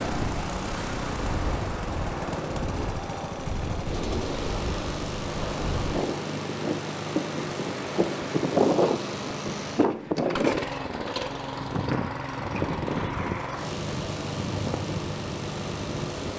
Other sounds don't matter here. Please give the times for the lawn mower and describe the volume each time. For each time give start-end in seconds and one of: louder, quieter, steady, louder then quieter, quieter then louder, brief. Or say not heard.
0.0-16.3 steady.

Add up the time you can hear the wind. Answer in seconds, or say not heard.
16 s.